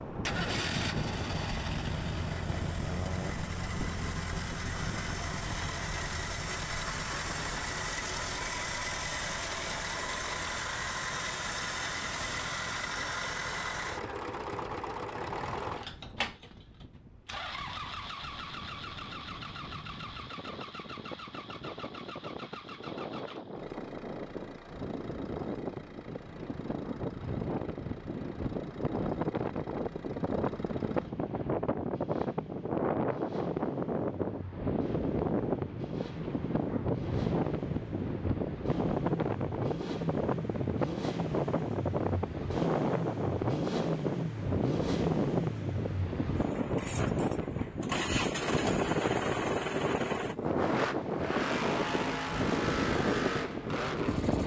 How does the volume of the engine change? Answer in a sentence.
The loudness of the engine goes down, then up.